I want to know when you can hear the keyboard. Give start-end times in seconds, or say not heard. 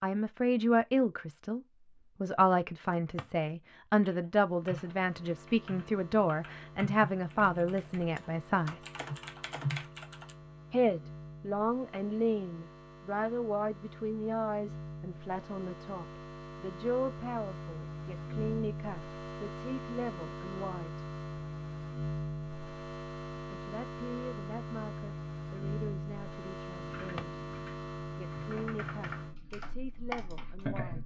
4.0-10.3, 26.8-31.0.